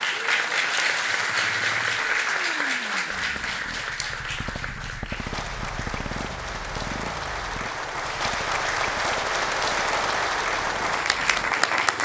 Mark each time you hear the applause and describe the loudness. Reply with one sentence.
You can hear the applause from 0.0 to 12.0 s, getting quieter then louder.